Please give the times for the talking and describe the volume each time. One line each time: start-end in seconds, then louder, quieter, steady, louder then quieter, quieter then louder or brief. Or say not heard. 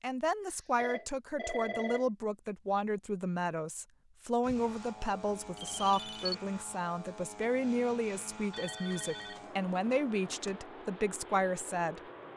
0.0-12.0 steady.